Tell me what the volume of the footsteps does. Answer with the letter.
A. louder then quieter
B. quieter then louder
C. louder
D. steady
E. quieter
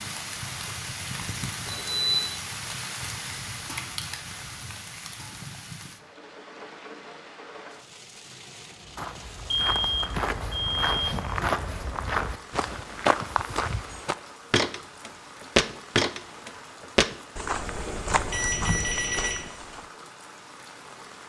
A.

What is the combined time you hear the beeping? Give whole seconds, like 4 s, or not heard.
4 s.